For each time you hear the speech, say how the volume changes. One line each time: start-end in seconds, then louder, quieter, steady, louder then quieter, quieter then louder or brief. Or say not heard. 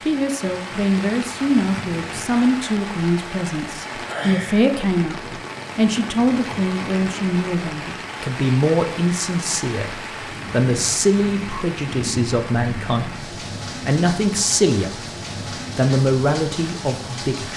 0.0-14.9 steady
15.8-17.5 brief.